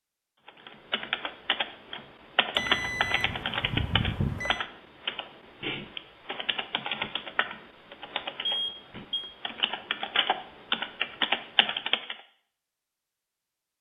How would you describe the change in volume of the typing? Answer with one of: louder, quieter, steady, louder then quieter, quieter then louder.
quieter then louder.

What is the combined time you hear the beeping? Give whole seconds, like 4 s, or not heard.
3 s.